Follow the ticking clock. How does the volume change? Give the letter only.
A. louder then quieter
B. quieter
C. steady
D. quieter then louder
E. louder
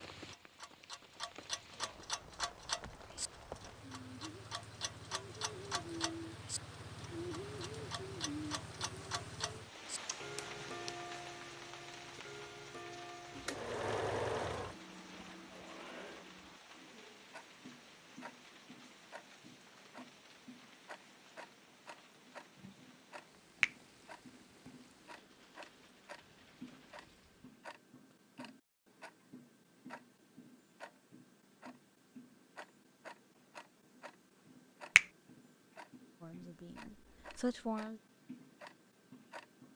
B.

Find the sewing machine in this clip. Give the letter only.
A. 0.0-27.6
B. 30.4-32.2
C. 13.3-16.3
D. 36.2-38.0
C.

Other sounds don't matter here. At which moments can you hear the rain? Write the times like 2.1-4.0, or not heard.
0.0-27.6.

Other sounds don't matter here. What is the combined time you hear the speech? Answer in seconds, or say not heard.
2 s.